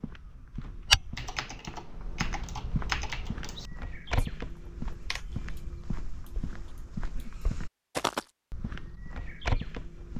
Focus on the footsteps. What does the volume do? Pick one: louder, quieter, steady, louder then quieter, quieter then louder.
quieter then louder.